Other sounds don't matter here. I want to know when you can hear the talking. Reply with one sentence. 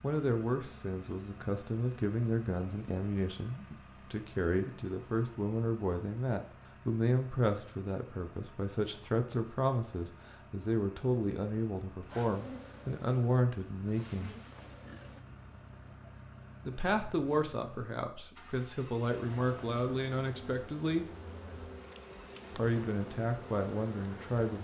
You can hear the talking from 0.0 to 14.3 s, from 16.6 to 21.1 s and from 22.5 to 24.5 s.